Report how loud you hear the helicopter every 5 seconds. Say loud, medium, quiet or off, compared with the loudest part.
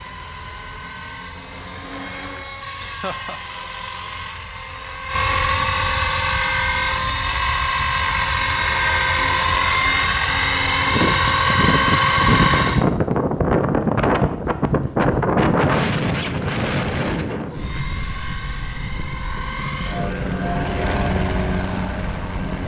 quiet, loud, loud, quiet, medium.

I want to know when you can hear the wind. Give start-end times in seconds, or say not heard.
10.8-22.6.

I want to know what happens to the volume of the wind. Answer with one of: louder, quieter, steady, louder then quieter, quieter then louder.
quieter.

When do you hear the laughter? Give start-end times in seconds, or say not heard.
2.8-3.4.